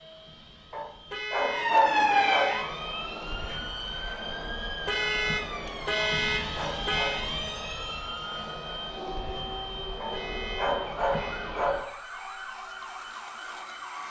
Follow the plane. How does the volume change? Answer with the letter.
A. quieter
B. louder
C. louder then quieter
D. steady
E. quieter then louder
C.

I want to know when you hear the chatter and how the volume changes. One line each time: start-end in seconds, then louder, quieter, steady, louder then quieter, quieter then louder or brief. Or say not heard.
not heard.